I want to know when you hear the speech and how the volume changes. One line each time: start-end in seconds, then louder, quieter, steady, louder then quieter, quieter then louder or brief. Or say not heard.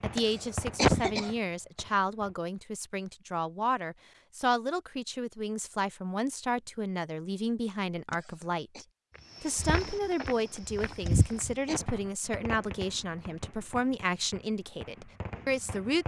0.0-16.0 steady.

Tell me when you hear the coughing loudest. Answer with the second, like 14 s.
1 s.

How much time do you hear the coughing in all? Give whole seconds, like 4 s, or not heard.
3 s.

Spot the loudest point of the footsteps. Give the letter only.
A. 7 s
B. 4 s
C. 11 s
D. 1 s
C.